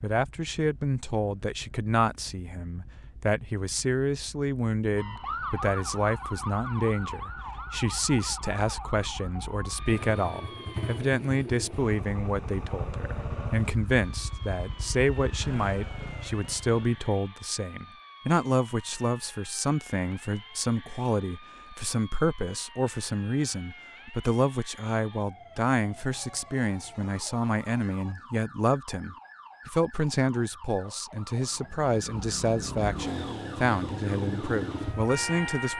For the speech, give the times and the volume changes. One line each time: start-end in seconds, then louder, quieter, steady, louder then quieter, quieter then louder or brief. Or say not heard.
0.0-35.7 steady.